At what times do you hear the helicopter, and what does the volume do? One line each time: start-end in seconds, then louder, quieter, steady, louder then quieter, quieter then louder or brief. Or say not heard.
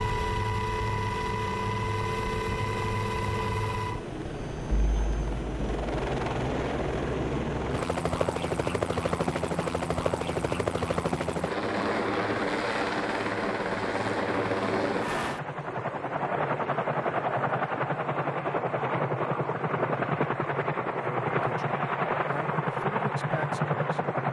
0.0-24.2 steady.